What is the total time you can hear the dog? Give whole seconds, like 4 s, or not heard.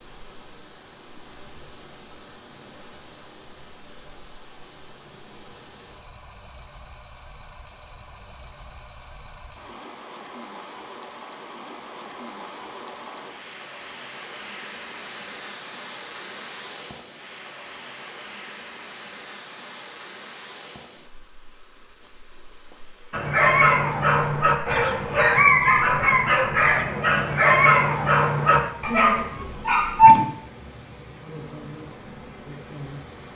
7 s.